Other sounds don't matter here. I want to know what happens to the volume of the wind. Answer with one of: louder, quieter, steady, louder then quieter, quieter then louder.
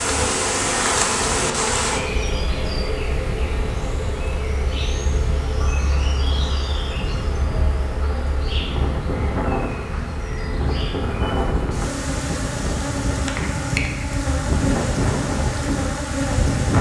louder.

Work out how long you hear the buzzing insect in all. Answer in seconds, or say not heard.
17 s.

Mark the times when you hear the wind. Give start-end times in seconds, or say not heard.
0.0-16.7.